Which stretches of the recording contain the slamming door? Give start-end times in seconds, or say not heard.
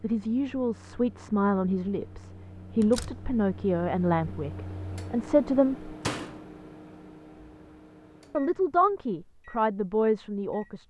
2.8-3.2, 6.0-6.5.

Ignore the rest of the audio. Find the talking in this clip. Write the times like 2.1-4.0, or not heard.
0.0-5.9, 8.3-10.8.